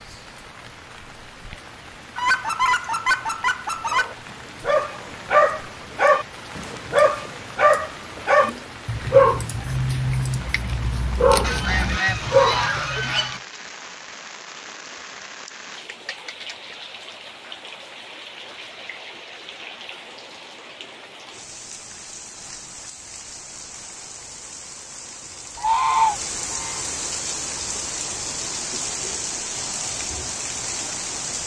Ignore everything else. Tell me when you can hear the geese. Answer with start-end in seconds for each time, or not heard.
2.1-4.2, 11.4-13.4, 25.6-26.8.